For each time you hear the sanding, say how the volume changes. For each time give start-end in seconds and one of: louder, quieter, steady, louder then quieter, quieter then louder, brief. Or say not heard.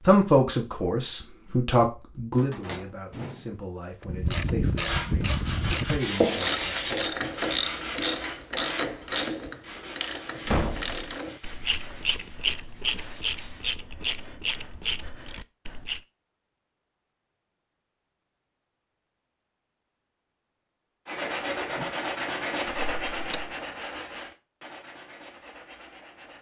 4.8-13.7 quieter
21.1-26.3 quieter.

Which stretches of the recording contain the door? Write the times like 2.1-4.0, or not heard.
2.4-3.5, 10.4-11.2, 22.6-23.4.